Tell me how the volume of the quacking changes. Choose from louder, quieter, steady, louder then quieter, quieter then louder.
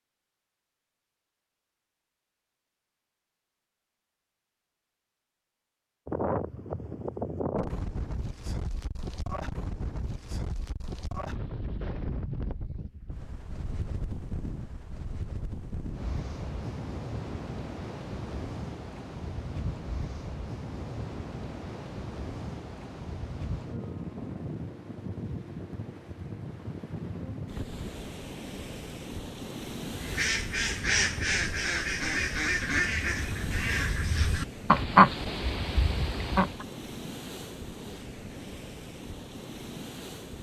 louder then quieter.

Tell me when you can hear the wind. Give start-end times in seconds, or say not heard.
6.0-40.3.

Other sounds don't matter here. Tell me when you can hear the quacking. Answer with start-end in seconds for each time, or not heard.
29.9-36.6.